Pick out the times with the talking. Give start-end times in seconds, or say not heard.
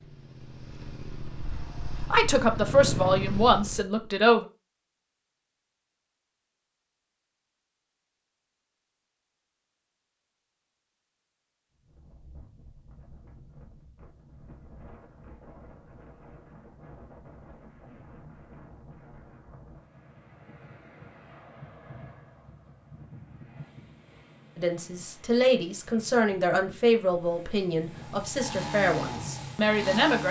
2.1-4.5, 24.6-30.2.